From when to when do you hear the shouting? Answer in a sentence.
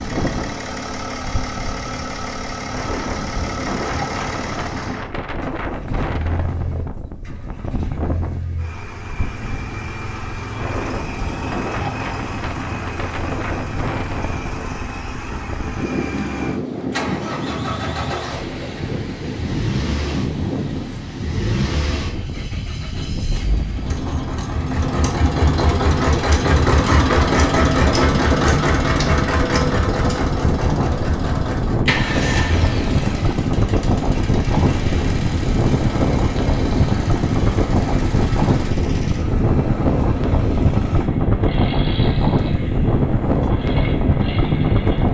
The shouting can't be heard in this clip.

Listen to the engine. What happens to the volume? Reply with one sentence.
The loudness of the engine goes up, then down.